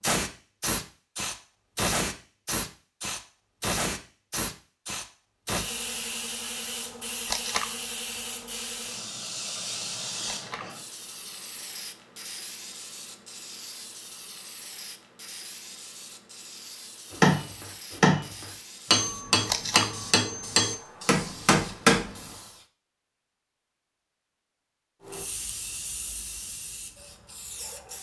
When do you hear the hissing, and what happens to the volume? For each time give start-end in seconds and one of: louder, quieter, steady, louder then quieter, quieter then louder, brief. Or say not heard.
0.0-22.6 quieter
25.0-27.9 brief.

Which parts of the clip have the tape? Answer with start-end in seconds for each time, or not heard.
7.2-7.7, 10.2-10.7, 19.4-19.9.